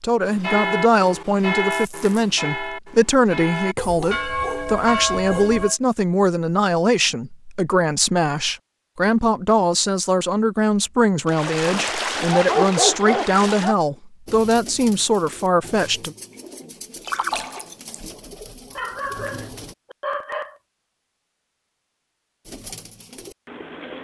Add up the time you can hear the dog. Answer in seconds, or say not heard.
5 s.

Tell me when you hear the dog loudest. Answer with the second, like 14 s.
13 s.